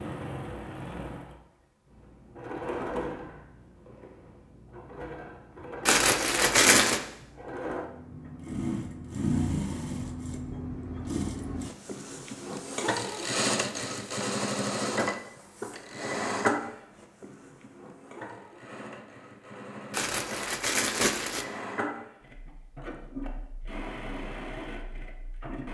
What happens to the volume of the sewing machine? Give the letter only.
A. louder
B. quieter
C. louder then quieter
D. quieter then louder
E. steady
C.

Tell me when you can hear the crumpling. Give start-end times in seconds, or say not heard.
5.8-7.0, 19.9-21.4.